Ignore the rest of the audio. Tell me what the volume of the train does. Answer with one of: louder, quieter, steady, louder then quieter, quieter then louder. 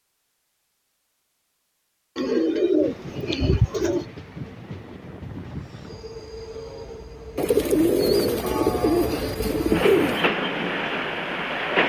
louder.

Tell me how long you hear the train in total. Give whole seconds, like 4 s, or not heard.
9 s.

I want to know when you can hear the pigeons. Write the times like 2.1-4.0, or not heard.
2.1-4.0, 7.3-10.2.